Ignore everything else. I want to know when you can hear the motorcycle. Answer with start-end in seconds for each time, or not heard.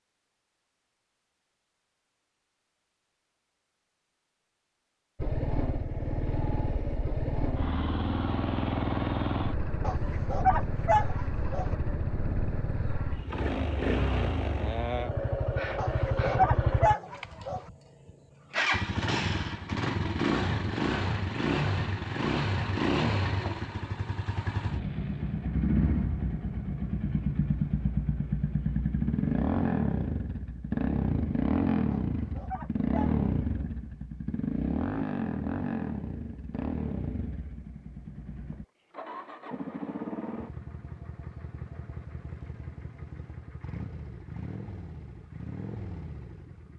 5.2-46.7.